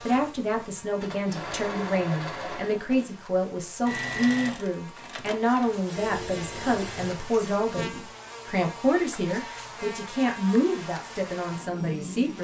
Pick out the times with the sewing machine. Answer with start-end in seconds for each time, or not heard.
0.0-7.6.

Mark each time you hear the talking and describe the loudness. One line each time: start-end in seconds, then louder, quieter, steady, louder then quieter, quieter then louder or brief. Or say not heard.
0.1-12.3 steady.